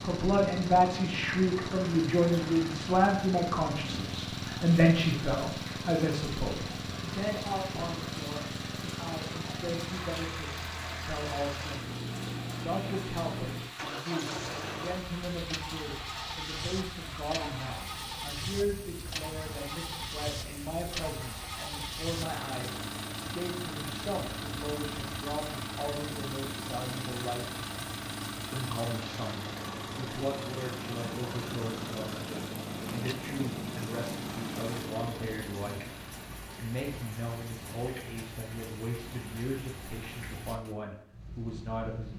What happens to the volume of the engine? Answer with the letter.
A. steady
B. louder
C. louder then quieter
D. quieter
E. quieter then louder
A.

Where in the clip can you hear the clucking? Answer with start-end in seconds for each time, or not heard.
not heard.